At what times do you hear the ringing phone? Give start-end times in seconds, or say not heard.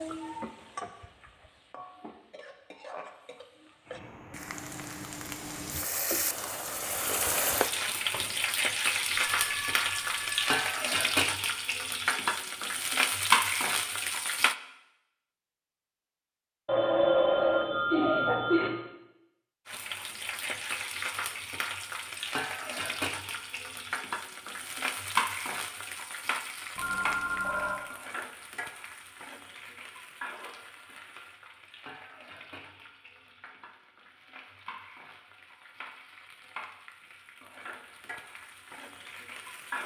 9.3-10.6, 16.6-18.7, 26.8-27.8.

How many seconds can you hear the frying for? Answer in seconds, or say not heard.
35 s.